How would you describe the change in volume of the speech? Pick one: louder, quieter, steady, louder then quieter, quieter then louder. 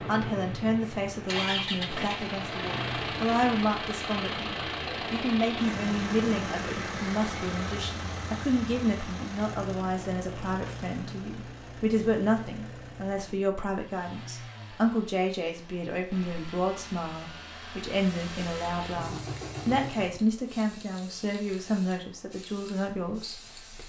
steady.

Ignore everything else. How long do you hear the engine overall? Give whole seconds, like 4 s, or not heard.
20 s.